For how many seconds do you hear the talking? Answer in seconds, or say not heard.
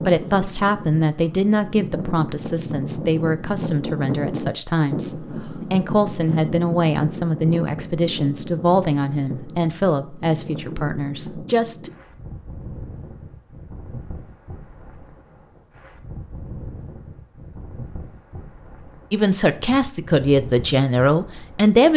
15 s.